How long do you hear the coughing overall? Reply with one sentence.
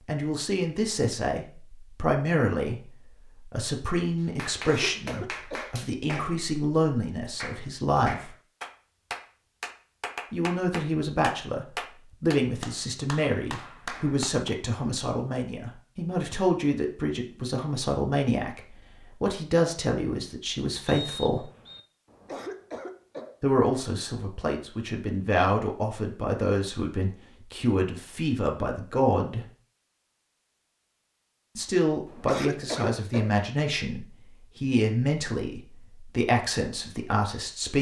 The coughing can be heard for 4 seconds in total.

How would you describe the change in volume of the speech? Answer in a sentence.
The volume of the speech stays about the same.